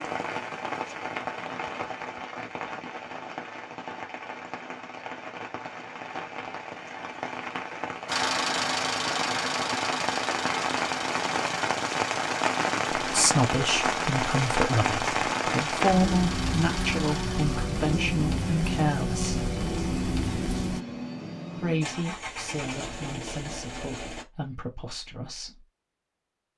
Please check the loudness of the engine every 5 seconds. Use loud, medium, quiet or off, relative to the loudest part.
off, loud, medium, medium, medium, off.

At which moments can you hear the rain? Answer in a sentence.
You can hear the rain from 0.0 to 20.8 s.